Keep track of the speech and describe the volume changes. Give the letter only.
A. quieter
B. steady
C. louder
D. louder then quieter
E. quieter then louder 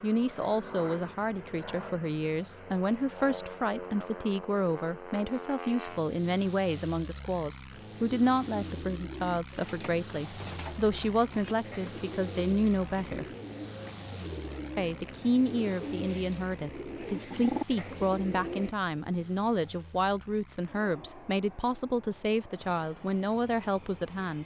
B.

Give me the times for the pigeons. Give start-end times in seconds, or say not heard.
8.2-18.8.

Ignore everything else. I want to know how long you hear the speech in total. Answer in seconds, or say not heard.
23 s.